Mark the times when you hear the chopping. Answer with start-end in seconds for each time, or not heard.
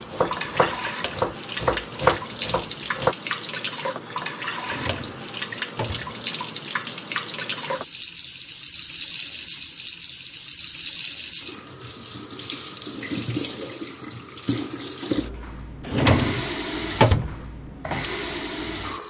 0.1-3.1.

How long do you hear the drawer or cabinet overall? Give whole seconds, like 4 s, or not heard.
3 s.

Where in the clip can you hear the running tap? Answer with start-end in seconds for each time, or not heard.
0.0-19.0.